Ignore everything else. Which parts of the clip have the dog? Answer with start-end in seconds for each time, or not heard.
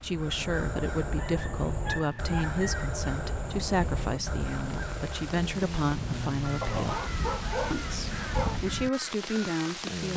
1.1-2.7, 6.6-8.6.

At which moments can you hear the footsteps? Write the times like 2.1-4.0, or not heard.
not heard.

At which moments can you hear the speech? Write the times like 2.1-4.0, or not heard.
0.0-7.0, 7.7-10.1.